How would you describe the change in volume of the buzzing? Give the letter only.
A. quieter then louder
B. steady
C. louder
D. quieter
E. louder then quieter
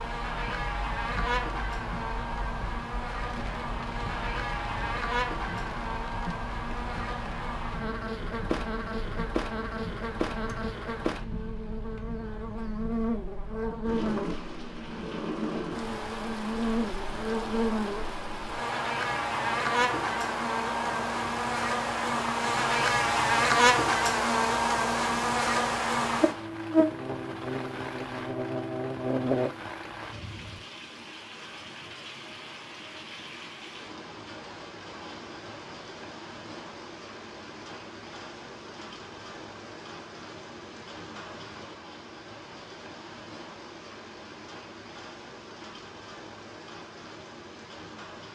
C.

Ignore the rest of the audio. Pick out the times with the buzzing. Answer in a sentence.
The buzzing can be heard from 0.0 to 29.5 s.